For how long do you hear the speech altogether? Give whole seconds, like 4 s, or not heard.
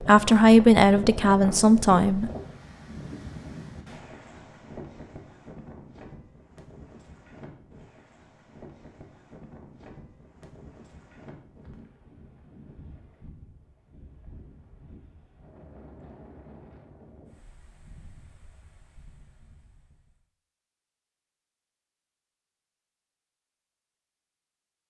2 s.